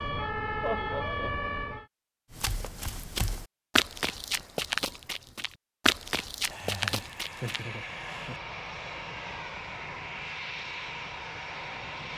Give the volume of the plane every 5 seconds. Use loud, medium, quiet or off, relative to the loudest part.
off, loud, loud.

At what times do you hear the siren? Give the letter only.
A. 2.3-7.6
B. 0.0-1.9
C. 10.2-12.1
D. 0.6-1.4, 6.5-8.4
B.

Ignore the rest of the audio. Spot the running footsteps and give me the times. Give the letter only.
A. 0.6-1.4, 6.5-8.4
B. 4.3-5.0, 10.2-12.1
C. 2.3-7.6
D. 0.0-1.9
C.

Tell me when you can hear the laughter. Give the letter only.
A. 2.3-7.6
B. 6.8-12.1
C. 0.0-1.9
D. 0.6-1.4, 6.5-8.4
D.